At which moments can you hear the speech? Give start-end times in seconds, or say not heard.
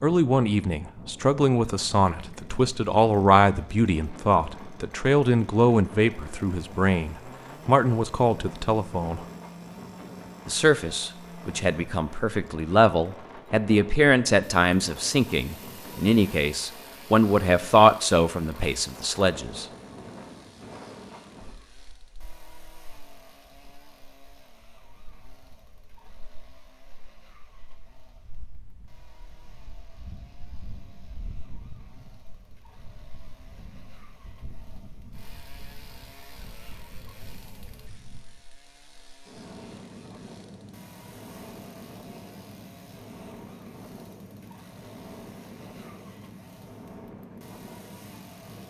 0.0-9.2, 10.4-19.6.